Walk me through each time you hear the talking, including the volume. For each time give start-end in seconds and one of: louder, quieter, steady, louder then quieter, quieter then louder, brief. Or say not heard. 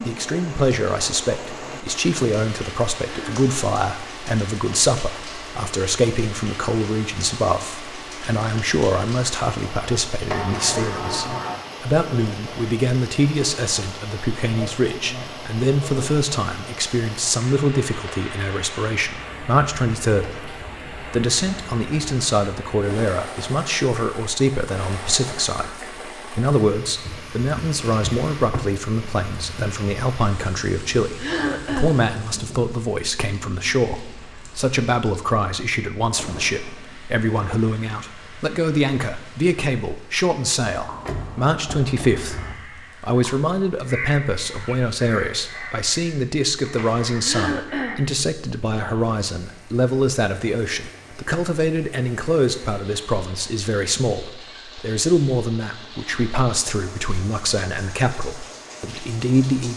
0.1-59.7 steady.